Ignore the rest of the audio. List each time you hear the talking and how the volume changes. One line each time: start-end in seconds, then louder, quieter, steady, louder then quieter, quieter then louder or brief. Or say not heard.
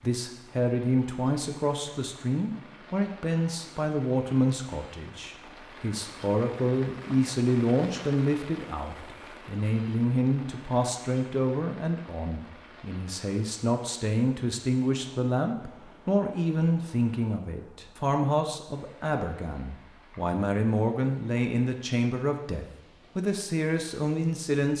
0.0-24.7 steady.